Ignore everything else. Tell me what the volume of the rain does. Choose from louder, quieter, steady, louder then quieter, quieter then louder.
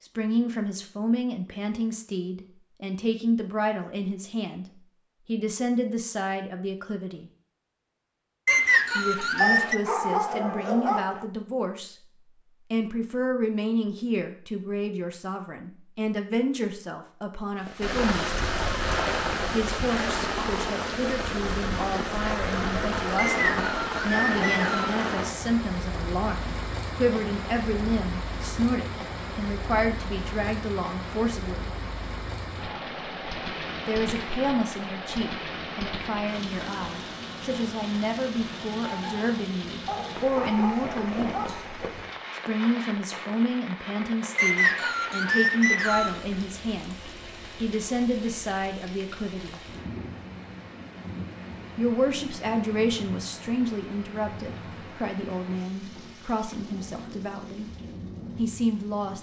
quieter.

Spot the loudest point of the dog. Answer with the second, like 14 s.
10 s.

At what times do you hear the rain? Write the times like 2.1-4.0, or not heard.
17.6-59.1.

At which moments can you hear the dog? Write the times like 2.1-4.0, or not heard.
9.4-11.2, 39.9-41.9.